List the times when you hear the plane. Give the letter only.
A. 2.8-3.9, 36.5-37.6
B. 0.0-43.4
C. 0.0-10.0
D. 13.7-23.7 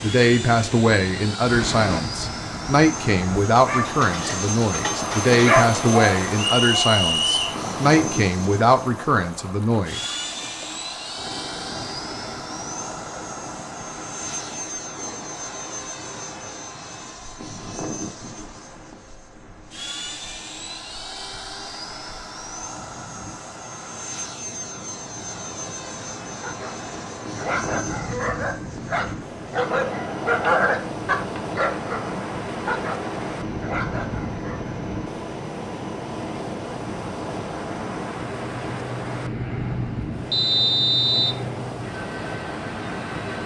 B.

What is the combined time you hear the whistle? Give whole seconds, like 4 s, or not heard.
2 s.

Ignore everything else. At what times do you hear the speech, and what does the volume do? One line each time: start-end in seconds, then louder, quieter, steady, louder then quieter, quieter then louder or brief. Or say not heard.
0.0-10.0 steady.